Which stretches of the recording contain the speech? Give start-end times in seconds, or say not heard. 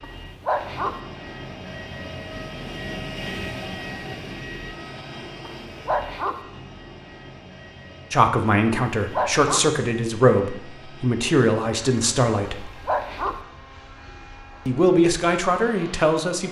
8.1-12.7, 14.7-16.4.